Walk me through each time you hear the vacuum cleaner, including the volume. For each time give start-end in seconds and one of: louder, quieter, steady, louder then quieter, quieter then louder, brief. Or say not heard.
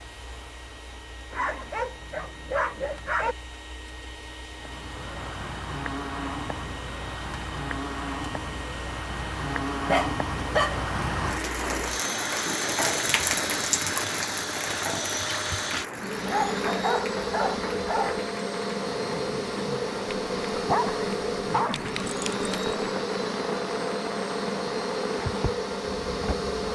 0.0-26.6 louder.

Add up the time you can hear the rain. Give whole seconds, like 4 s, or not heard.
22 s.